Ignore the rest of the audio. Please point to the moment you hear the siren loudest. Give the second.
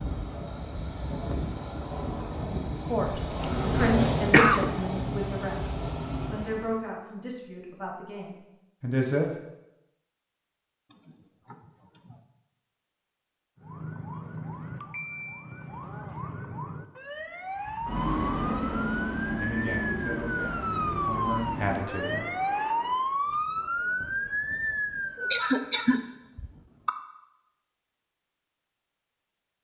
23 s.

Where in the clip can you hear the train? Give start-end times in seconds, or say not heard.
0.0-6.8, 17.6-23.1.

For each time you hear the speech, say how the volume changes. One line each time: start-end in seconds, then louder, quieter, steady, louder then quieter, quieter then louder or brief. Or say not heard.
2.9-9.2 quieter
19.4-22.2 brief.